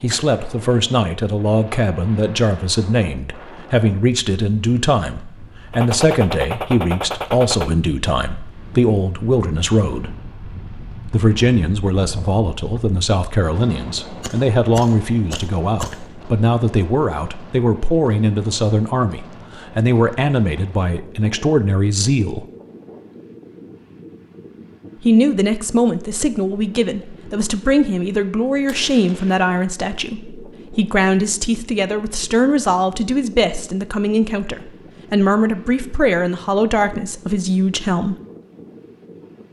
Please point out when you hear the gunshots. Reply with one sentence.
You can hear the gunshots from 5.7 to 7.7 s, from 14.2 to 16.2 s and from 28.8 to 29.5 s.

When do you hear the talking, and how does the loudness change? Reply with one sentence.
The talking can be heard from 0.0 to 10.2 s, at a steady volume; from 11.1 to 22.4 s, at a steady volume; and from 25.0 to 38.1 s, at a steady volume.